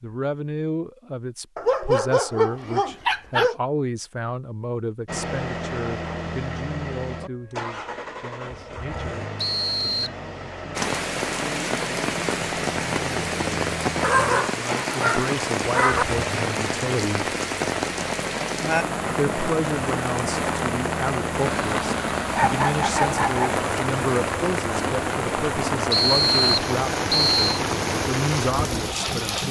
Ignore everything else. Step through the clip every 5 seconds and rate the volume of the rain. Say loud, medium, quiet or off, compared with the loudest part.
off, off, loud, loud, loud, loud.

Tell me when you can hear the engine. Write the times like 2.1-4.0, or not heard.
5.0-29.4.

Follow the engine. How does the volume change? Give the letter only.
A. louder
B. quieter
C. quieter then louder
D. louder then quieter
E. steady
E.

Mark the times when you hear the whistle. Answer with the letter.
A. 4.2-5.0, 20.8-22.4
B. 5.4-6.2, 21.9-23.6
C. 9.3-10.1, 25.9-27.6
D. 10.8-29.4
C.